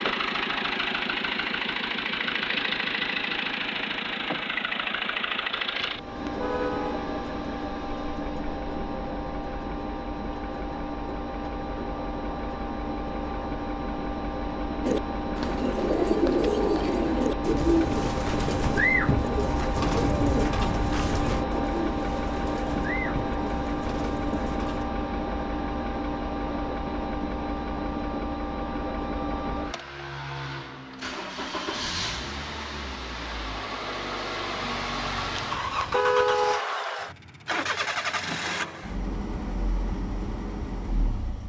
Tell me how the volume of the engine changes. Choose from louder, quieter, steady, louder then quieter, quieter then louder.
steady.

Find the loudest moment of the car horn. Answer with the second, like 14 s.
36 s.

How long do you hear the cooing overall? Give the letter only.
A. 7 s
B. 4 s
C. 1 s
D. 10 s
D.